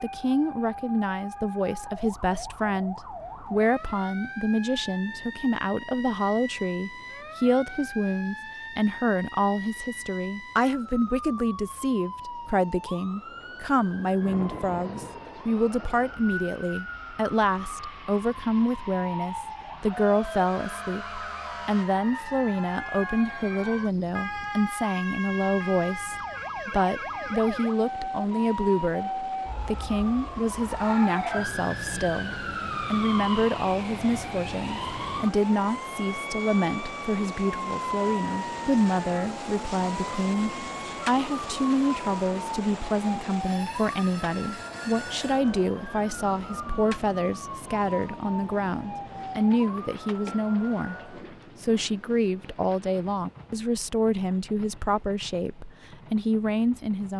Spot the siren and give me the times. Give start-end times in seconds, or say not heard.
0.0-51.2.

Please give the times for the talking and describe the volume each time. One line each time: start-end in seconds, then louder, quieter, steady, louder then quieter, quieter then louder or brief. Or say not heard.
0.0-57.1 steady.